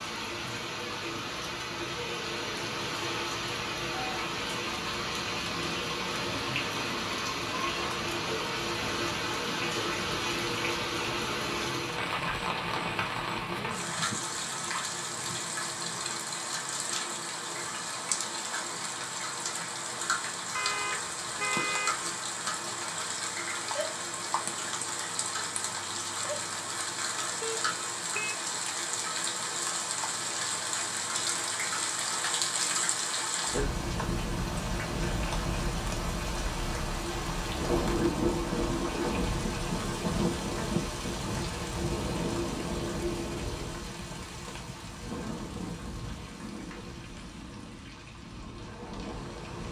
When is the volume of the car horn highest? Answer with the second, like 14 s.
22 s.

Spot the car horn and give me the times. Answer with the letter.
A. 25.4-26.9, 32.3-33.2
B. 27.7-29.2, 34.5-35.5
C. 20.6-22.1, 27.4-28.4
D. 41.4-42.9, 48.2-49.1
C.